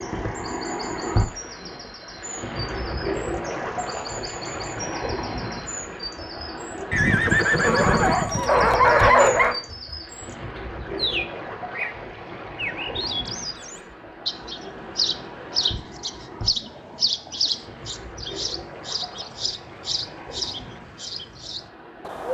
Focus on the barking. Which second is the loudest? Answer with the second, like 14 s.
9 s.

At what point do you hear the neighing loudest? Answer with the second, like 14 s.
7 s.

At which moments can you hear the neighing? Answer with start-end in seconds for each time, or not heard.
6.9-8.8.